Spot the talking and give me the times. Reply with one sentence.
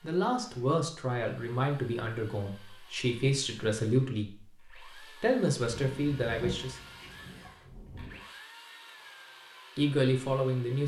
The talking can be heard from 0.0 to 6.8 s and from 9.8 to 10.8 s.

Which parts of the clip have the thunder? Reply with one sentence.
The thunder can be heard from 5.8 to 8.2 s.